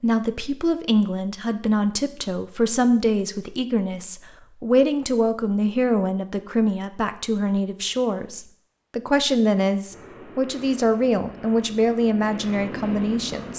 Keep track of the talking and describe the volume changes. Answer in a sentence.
The loudness of the talking stays about the same.